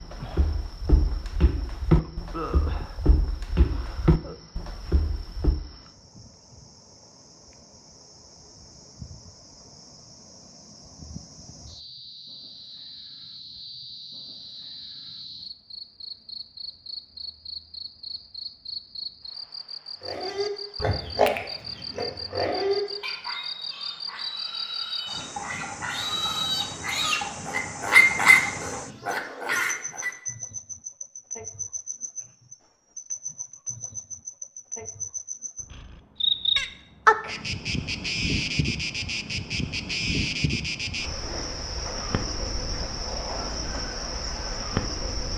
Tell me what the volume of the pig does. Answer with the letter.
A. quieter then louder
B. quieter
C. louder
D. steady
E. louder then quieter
A.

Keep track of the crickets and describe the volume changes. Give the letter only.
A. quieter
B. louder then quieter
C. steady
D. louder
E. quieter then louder
D.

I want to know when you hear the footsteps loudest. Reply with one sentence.
The volume of the footsteps peaks at 2 seconds.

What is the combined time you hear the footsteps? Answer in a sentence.
The footsteps can be heard for 6 seconds in total.